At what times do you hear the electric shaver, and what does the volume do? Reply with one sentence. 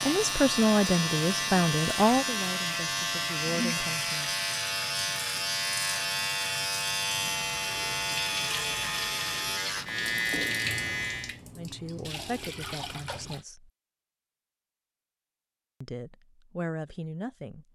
You can hear the electric shaver from 0.0 to 11.3 s, at a steady volume.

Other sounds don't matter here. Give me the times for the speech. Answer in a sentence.
The speech can be heard from 0.0 to 4.3 s, from 11.6 to 13.7 s and from 15.8 to 17.6 s.